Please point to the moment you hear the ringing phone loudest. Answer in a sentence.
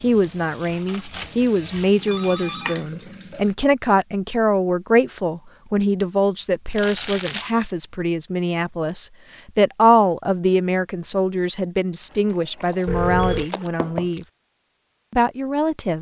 The volume of the ringing phone peaks at 13 seconds.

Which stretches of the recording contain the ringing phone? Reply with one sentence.
You can hear the ringing phone from 2.0 to 2.9 s and from 12.8 to 13.5 s.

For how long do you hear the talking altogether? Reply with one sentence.
You can hear the talking for 15 seconds altogether.